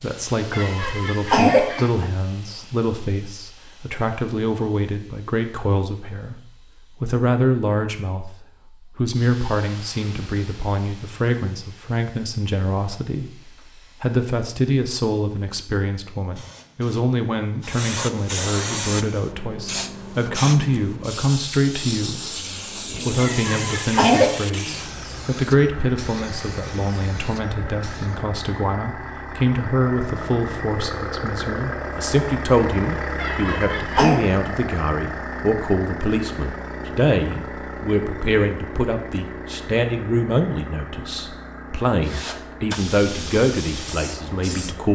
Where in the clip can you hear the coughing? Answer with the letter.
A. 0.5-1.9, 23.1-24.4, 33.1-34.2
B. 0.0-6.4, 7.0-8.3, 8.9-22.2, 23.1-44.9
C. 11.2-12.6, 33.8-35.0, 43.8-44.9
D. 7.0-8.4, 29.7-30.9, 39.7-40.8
A.